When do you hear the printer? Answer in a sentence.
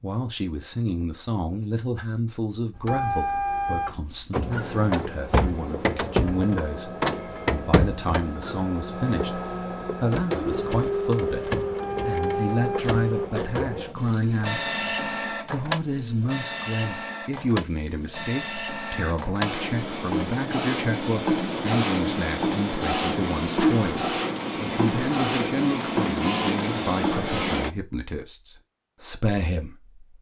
The printer can be heard from 2.8 to 27.7 s.